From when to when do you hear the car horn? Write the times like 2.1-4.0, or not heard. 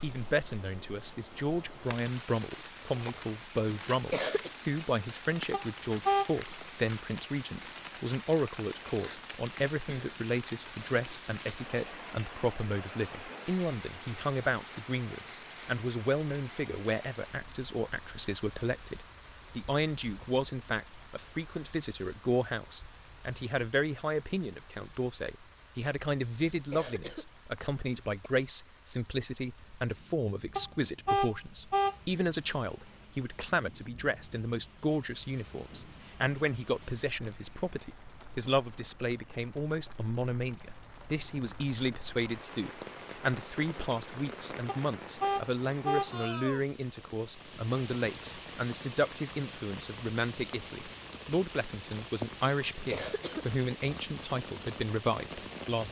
5.5-6.3, 30.6-31.9, 44.6-46.1.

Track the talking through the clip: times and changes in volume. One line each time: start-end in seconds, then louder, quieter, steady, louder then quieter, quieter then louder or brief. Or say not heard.
0.0-55.8 steady.